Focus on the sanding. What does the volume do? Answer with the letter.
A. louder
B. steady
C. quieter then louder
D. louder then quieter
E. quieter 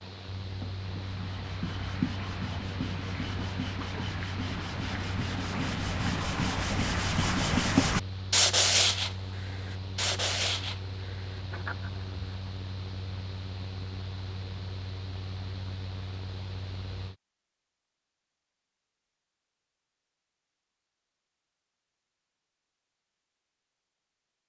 D.